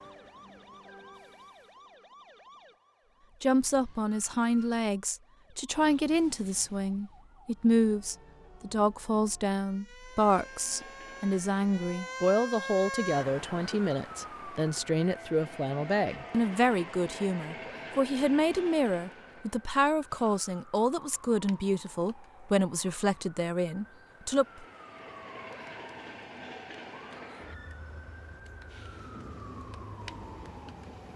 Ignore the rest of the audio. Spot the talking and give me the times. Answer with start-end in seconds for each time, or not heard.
3.4-24.6.